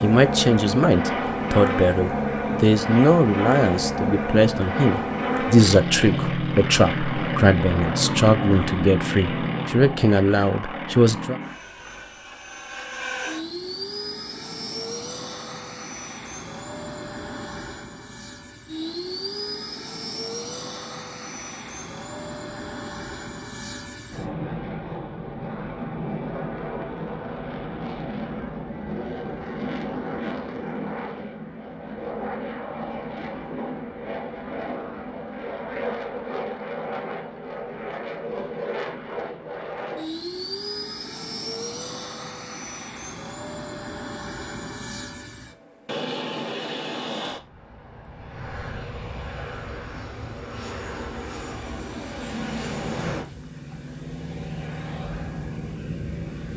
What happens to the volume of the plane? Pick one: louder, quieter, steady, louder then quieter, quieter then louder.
quieter.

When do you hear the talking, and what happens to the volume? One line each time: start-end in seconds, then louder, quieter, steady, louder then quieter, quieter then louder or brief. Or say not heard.
0.0-11.4 steady.